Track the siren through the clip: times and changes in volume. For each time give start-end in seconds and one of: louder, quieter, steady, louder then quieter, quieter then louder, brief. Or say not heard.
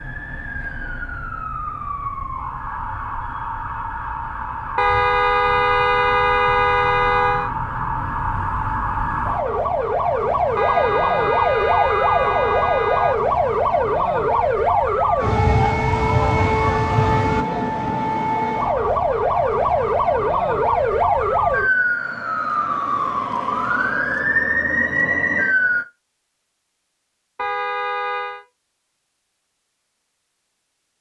0.0-25.9 louder.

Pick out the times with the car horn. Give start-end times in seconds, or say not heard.
4.8-7.5, 10.6-13.2, 27.4-28.4.